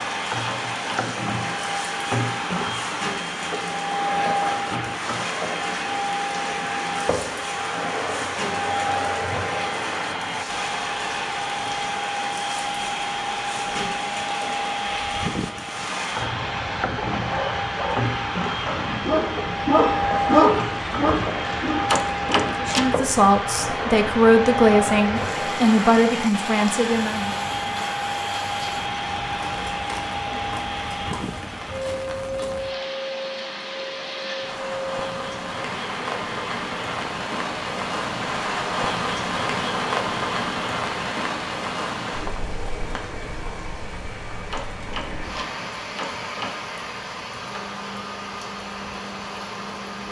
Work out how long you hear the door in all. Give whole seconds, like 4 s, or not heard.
4 s.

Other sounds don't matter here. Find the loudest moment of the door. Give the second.
22 s.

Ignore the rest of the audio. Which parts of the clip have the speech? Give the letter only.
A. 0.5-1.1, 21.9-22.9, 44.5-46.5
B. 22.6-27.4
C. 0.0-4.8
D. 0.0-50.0
B.